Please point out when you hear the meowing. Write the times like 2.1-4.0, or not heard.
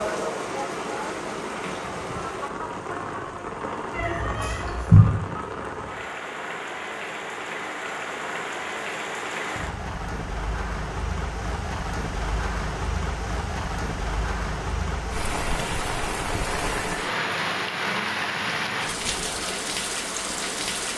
3.9-5.0.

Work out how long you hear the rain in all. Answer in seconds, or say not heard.
21 s.